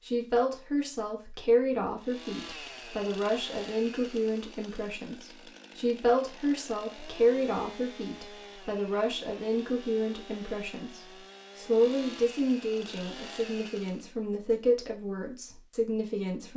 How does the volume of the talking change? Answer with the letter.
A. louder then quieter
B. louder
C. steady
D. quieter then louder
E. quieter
C.